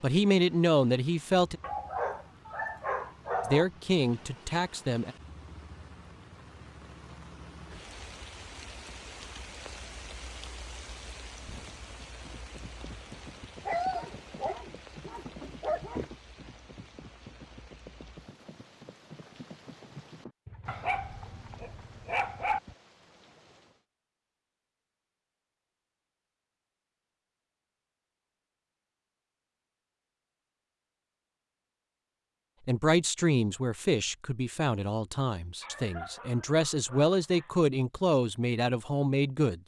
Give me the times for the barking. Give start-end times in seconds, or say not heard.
1.6-3.6, 13.7-16.1, 20.6-22.6, 35.6-37.5.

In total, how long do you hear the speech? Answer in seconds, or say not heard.
10 s.